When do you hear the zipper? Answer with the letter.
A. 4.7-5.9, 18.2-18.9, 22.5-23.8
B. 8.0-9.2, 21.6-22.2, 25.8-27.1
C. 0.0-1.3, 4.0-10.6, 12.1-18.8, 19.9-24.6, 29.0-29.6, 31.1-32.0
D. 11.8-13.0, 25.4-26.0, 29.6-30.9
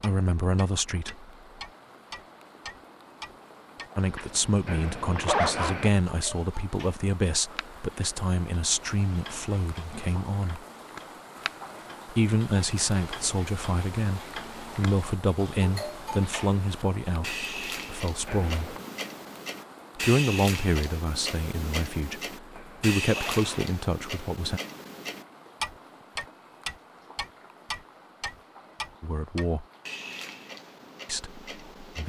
A.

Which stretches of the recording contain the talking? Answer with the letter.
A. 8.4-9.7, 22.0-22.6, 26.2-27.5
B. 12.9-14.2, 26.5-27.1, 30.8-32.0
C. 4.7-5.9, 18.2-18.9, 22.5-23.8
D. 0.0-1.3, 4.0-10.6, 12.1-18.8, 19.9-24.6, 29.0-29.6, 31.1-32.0
D.